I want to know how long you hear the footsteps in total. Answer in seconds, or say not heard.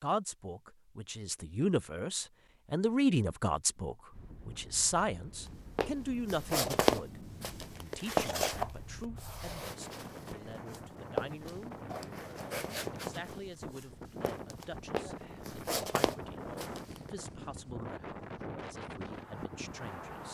11 s.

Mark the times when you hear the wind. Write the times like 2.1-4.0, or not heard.
4.1-20.2.